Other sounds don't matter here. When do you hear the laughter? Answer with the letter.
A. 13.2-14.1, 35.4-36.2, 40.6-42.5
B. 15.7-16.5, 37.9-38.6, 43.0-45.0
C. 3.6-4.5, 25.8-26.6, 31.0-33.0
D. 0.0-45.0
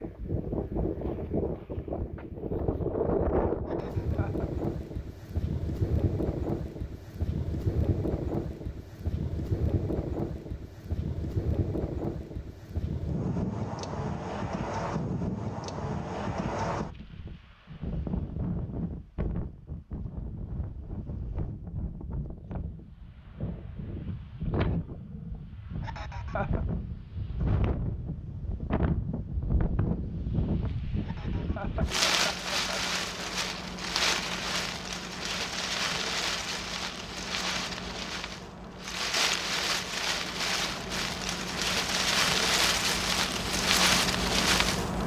C.